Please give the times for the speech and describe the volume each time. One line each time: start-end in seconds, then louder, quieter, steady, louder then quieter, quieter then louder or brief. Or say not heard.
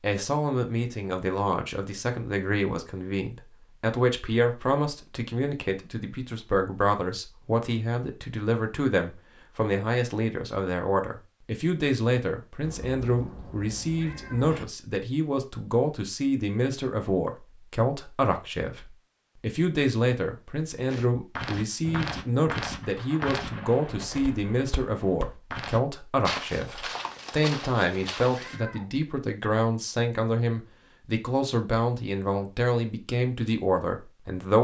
0.0-34.5 steady.